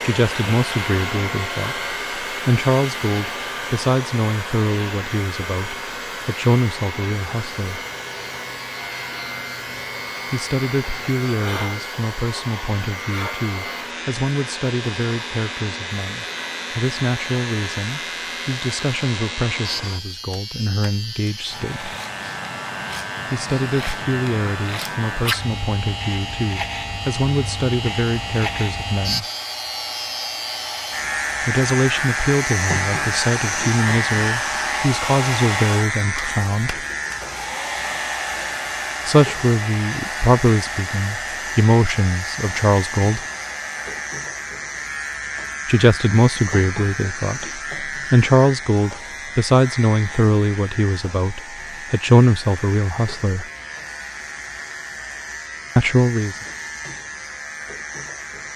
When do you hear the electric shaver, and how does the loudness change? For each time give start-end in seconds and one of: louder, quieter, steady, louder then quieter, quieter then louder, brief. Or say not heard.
0.2-58.5 louder then quieter.